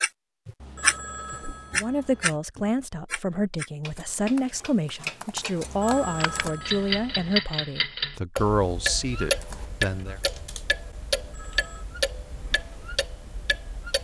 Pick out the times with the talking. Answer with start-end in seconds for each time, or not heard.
1.8-10.2.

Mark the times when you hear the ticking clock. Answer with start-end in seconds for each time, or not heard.
0.0-13.9.